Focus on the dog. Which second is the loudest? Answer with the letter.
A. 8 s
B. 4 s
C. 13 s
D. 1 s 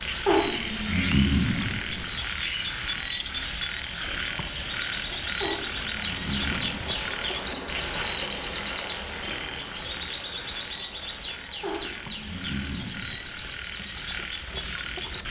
D.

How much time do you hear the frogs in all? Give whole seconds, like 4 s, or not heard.
15 s.